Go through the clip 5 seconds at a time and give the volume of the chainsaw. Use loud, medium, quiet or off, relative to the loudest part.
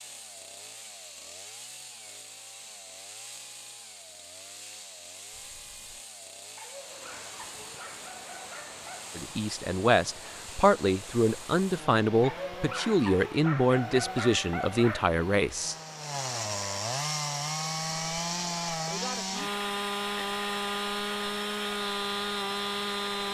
quiet, quiet, quiet, loud, loud.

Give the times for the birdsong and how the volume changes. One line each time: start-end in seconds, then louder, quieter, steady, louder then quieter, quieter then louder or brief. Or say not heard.
not heard.